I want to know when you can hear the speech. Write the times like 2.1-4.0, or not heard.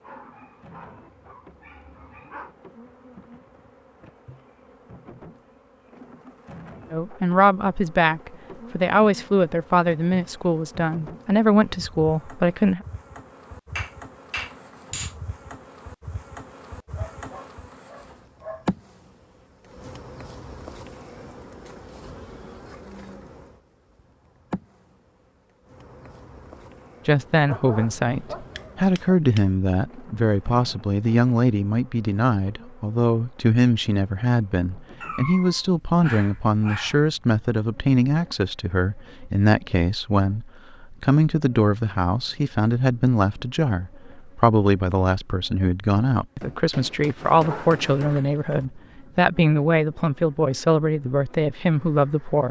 6.9-12.8, 27.1-52.4.